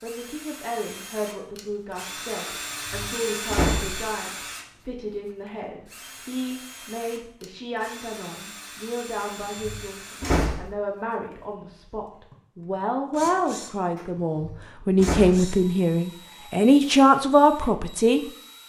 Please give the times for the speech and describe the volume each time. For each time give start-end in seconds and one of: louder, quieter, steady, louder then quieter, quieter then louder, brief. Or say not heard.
0.0-18.2 louder.